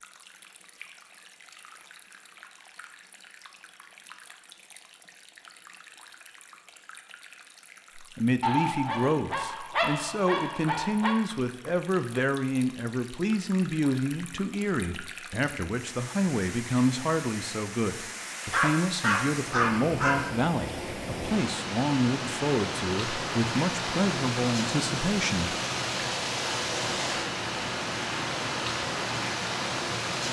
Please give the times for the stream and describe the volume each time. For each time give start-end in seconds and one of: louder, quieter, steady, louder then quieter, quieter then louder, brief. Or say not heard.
0.0-30.2 louder.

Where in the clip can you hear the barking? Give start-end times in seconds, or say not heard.
8.4-11.2, 18.4-20.2.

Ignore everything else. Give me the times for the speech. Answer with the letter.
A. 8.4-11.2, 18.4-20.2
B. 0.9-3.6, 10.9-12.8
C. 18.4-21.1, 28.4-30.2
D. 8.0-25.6
D.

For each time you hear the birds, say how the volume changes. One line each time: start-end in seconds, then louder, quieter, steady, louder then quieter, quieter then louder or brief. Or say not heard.
not heard.